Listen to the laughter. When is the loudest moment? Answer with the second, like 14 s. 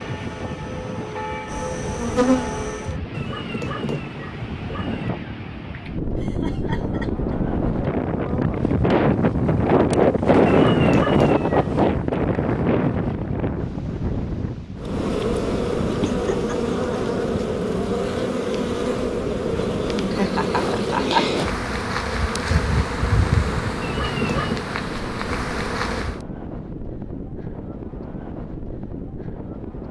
21 s.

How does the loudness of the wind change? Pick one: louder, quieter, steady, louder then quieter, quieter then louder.
louder then quieter.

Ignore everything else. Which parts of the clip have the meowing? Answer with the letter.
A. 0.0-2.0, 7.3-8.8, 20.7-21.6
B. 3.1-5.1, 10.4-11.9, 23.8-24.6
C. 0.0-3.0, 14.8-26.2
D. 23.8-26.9
B.